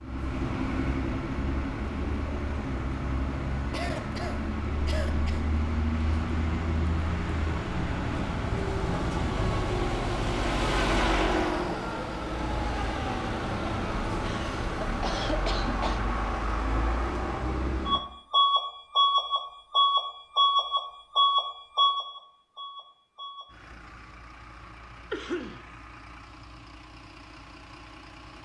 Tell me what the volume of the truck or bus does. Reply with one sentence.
The volume of the truck or bus goes up, then down.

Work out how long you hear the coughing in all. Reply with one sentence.
The coughing can be heard for 4 seconds in total.